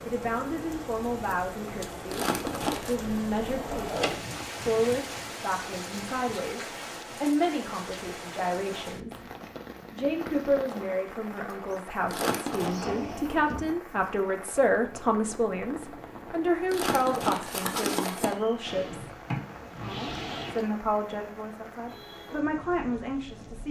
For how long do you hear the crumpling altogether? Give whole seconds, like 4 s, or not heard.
3 s.